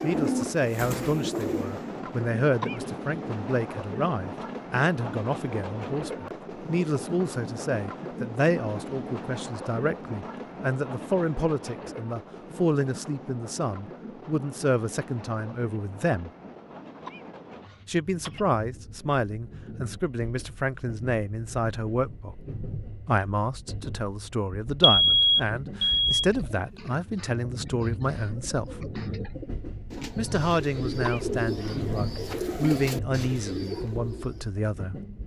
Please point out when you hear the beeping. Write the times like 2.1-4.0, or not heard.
24.8-26.2.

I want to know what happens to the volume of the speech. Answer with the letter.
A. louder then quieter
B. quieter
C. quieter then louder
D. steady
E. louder
D.